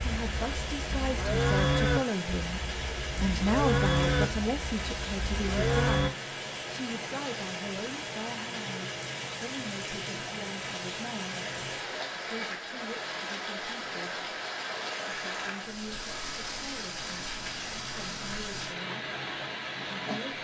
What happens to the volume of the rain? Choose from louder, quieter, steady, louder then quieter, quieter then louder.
steady.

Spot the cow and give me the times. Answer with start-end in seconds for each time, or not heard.
0.0-6.1.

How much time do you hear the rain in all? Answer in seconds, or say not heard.
20 s.